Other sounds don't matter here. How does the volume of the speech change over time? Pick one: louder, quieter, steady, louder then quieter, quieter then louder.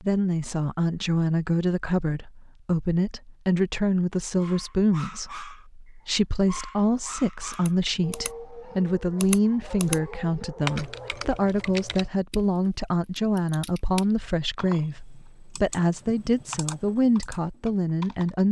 steady.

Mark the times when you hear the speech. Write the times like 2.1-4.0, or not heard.
0.0-18.4.